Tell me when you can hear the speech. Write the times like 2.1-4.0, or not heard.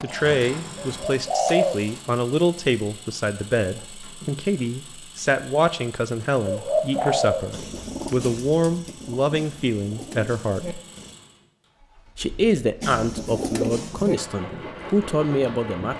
0.0-10.8, 12.2-15.9.